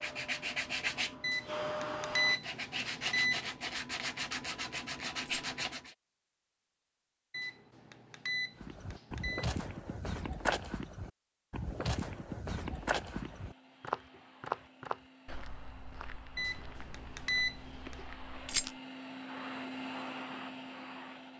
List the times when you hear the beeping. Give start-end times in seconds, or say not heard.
1.2-3.5, 7.3-9.4, 16.4-17.9.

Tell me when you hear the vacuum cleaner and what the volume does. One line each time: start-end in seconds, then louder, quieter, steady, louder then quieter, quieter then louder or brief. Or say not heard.
0.0-2.4 brief
12.7-21.3 louder.